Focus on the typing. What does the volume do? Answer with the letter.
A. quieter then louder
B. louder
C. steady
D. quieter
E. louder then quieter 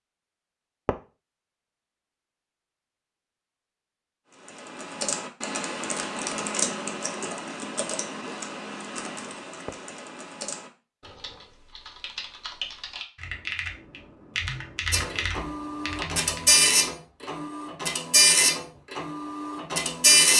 A.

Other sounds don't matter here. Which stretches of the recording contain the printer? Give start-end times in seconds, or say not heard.
14.9-20.3.